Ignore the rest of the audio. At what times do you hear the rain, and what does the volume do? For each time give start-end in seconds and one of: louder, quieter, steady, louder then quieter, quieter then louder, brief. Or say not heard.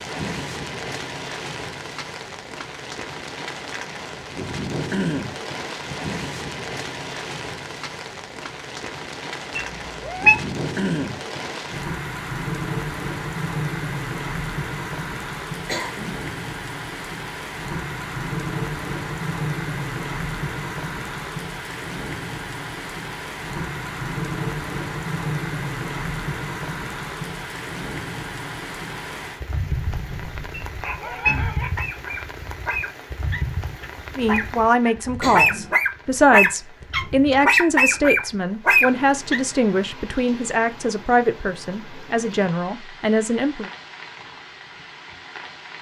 0.0-45.7 quieter.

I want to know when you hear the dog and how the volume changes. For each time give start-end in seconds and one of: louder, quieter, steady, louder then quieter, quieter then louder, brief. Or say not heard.
29.8-39.4 louder.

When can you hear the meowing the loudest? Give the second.
10 s.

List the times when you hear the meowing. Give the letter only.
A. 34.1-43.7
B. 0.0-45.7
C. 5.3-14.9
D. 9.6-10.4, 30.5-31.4
D.